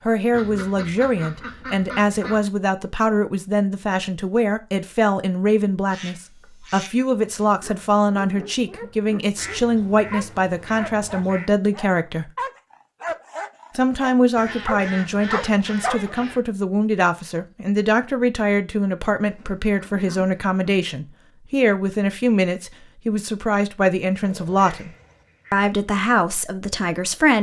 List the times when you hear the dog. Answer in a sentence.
You can hear the dog from 7.5 to 16.2 s.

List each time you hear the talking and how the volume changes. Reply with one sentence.
You can hear the talking from 0.1 to 12.3 s, at a steady volume; from 13.8 to 24.9 s, at a steady volume; and briefly from 25.5 to 27.3 s.